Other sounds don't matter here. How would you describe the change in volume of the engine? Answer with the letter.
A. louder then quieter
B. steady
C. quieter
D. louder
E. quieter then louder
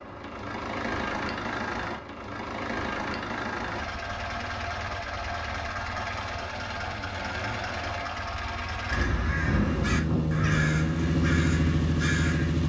D.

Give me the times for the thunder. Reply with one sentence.
The thunder can be heard from 9.4 to 10.8 s.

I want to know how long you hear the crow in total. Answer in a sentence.
The crow can be heard for 4 seconds in total.